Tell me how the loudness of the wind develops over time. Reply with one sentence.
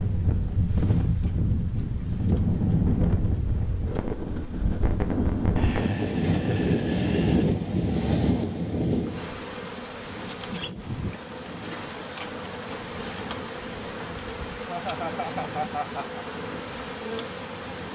The volume of the wind goes down.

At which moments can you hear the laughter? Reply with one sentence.
The laughter can be heard from 5.5 to 7.5 s and from 14.7 to 16.2 s.